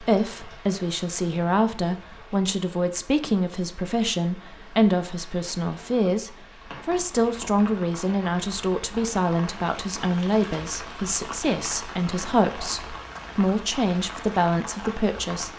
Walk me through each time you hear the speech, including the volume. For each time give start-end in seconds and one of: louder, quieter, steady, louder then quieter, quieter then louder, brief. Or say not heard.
0.0-15.5 steady.